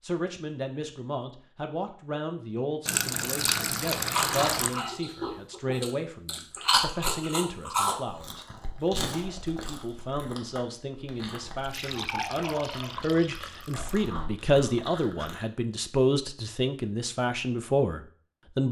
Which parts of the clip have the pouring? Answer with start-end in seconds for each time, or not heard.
2.9-4.8, 11.6-14.1.